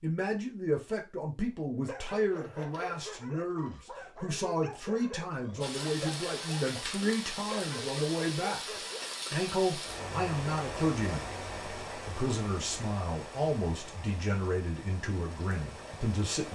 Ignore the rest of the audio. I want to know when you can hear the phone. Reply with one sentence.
The phone can't be heard in this clip.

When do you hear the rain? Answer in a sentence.
You can hear the rain from 5.6 to 16.5 s.